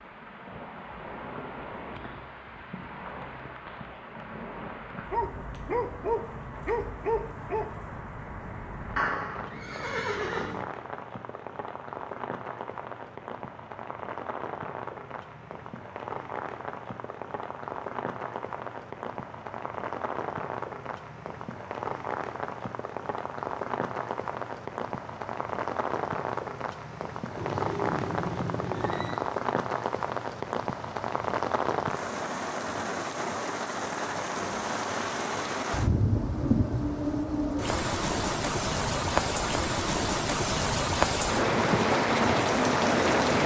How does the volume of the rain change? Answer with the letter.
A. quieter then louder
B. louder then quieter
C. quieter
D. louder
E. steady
D.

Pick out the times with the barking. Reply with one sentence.
The barking can be heard from 5.1 to 7.7 s.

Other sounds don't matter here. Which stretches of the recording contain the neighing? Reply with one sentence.
You can hear the neighing from 8.9 to 10.7 s and from 27.4 to 29.2 s.